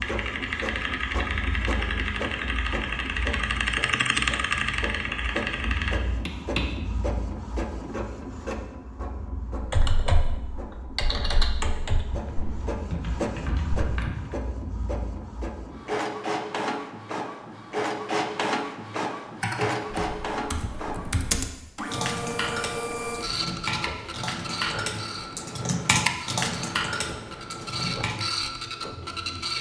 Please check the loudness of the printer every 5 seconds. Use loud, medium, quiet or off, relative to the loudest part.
medium, medium, medium, loud, loud, loud.